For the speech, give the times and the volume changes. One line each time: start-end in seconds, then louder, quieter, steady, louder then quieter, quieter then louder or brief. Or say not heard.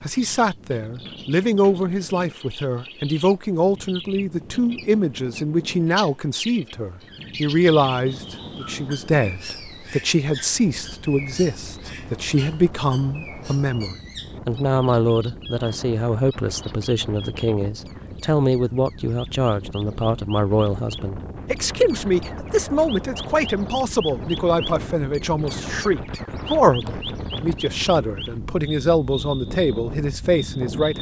0.0-30.9 steady.